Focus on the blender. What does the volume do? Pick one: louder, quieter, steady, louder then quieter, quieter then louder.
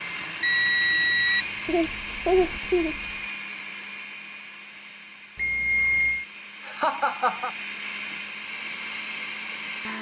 quieter then louder.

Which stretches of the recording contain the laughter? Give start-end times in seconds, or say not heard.
1.6-3.1, 6.7-7.5.